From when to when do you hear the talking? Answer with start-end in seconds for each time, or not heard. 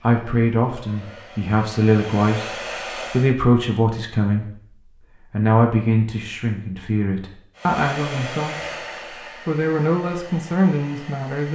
0.0-4.5, 5.3-11.5.